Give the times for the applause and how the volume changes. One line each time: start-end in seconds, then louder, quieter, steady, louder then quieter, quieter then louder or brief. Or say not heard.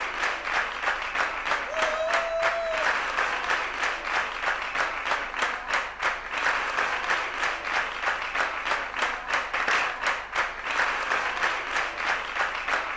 0.0-12.9 steady.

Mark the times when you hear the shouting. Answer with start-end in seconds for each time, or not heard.
1.6-3.0.